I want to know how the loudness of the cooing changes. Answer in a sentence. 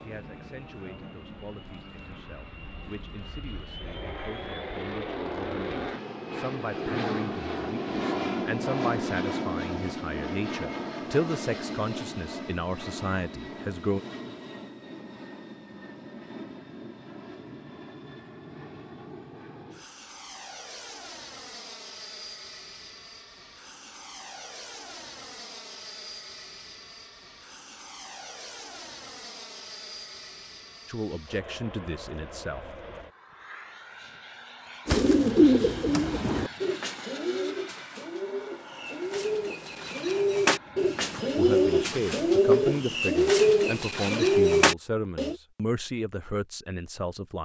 The loudness of the cooing goes down, then up.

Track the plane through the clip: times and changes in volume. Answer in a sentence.
You can hear the plane from 0.0 to 43.0 s, getting quieter.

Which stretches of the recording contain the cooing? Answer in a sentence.
The cooing can be heard from 34.9 to 45.4 s.